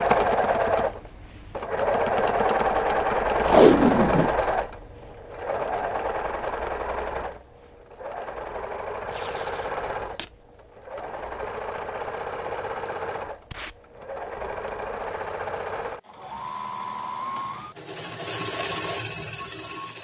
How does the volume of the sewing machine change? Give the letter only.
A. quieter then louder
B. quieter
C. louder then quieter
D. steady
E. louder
B.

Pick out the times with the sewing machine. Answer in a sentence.
The sewing machine can be heard from 0.0 to 19.9 s.